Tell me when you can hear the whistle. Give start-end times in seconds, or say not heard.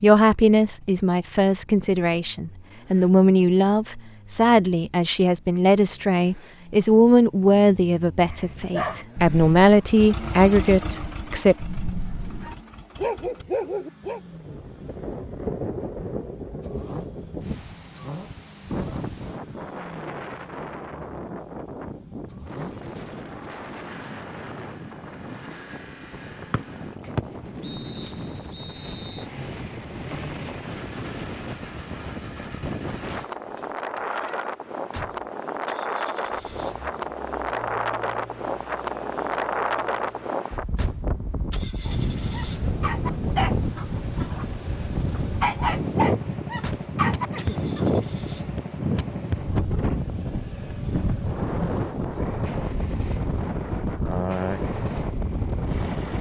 26.5-29.2.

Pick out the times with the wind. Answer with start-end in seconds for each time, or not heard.
14.2-56.1.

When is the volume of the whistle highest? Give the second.
27 s.